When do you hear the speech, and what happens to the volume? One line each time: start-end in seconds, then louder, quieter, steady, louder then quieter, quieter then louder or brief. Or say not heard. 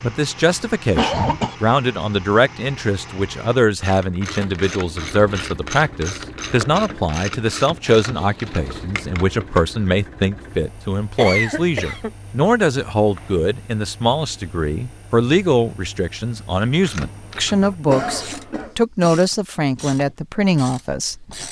0.0-21.4 steady.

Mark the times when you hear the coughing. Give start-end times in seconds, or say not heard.
0.5-1.6, 11.2-12.1, 17.9-18.8.